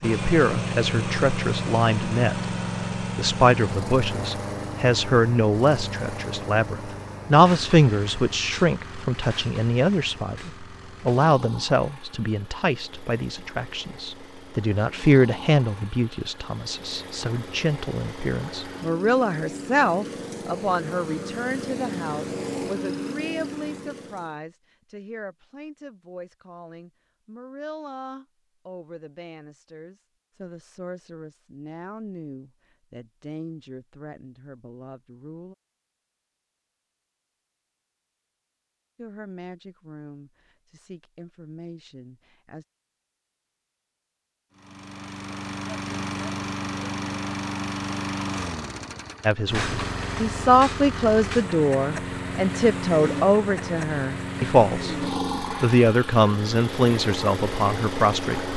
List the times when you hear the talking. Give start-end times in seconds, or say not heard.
0.0-35.5, 39.0-42.6, 49.2-58.5.